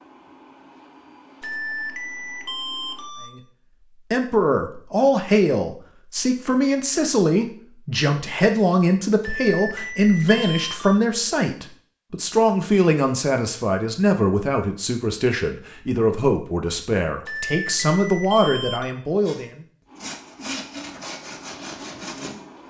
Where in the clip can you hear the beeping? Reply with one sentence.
The beeping can be heard from 1.4 to 3.3 s, from 9.2 to 11.0 s and from 17.2 to 18.9 s.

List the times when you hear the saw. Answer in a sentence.
You can hear the saw from 19.2 to 22.6 s.